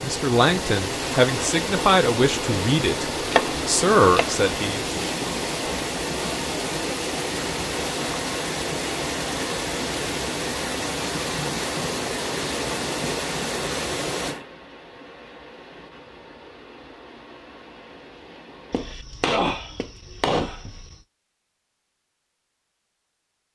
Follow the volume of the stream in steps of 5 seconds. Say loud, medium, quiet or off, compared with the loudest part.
loud, loud, loud, quiet, off.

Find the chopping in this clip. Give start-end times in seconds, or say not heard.
3.3-5.0, 18.7-21.0.